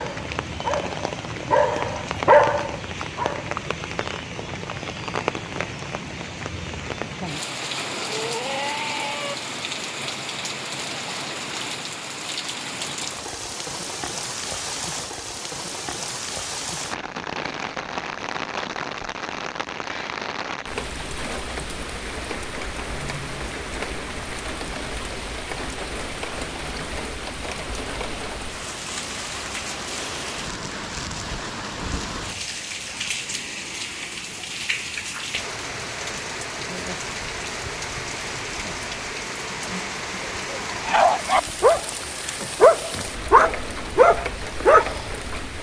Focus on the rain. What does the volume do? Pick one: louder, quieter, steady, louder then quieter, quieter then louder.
steady.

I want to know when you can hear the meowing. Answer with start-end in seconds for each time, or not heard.
7.8-9.3.